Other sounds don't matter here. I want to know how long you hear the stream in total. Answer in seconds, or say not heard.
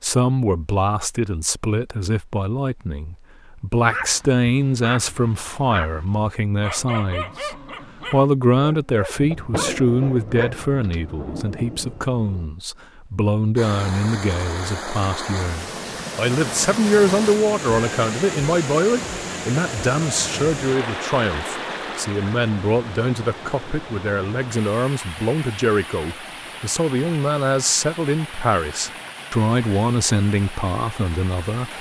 18 s.